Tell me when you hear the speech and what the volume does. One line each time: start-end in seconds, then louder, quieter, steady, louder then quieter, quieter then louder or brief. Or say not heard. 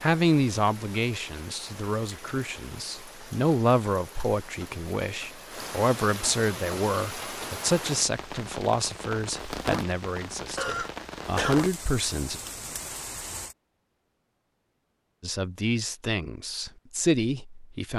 0.0-12.4 steady
15.2-17.9 brief.